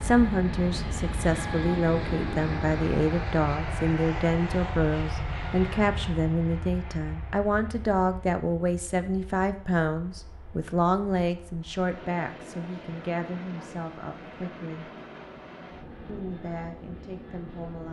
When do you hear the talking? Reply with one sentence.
The talking can be heard from 0.0 to 14.9 s and from 16.1 to 17.8 s.